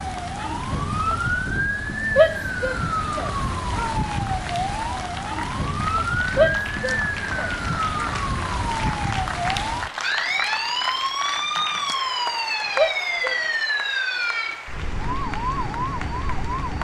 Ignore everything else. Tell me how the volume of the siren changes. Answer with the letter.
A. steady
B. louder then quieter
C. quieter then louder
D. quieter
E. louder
A.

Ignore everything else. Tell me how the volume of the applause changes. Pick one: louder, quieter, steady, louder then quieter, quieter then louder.
louder then quieter.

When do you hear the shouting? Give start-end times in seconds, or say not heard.
2.1-3.9, 6.3-8.1, 12.8-13.4.